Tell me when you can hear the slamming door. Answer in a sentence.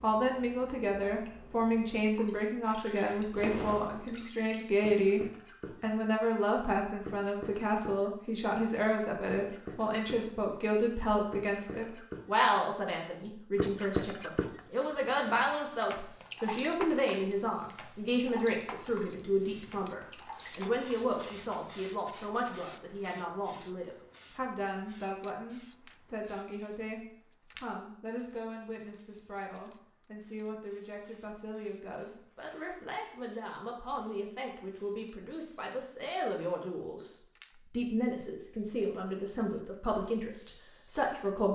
You can hear the slamming door from 2.5 to 4.2 s.